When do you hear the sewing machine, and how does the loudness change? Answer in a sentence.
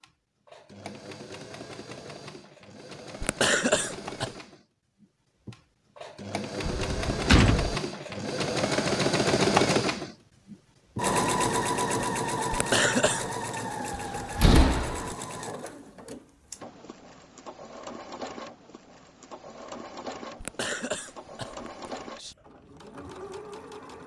The sewing machine can be heard from 0.0 to 24.0 s, getting louder then quieter.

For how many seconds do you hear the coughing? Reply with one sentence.
You can hear the coughing for 4 seconds altogether.